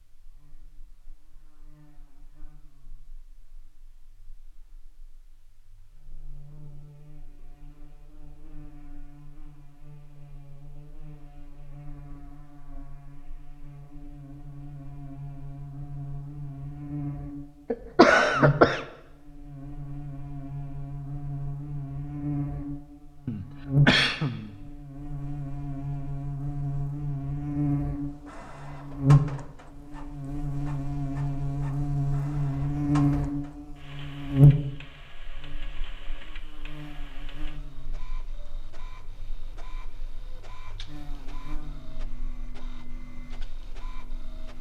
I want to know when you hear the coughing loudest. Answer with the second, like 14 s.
18 s.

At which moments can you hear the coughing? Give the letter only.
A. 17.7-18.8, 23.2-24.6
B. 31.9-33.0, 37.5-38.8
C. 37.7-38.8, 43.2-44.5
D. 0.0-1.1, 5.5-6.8
A.